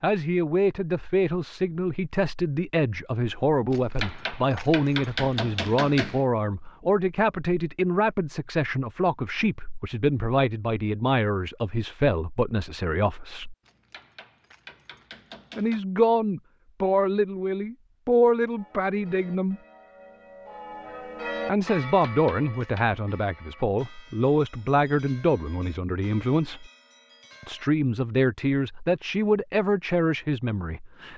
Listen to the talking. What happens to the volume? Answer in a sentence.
The loudness of the talking stays about the same.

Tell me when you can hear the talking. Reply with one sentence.
The talking can be heard from 0.0 to 13.6 s, from 15.6 to 19.6 s, from 21.4 to 26.7 s and from 27.4 to 31.1 s.